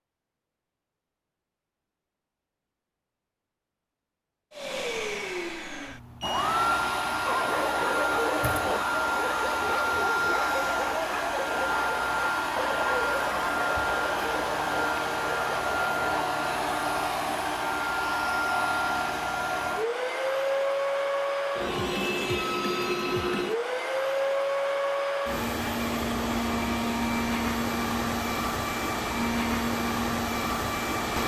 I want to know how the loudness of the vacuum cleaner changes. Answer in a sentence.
The loudness of the vacuum cleaner stays about the same.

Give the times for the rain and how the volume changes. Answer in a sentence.
You can't hear the rain here.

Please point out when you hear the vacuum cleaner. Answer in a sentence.
You can hear the vacuum cleaner from 4.5 to 31.2 s.